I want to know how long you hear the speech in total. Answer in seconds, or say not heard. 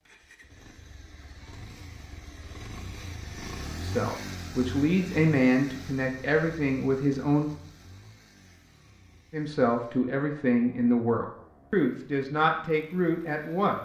8 s.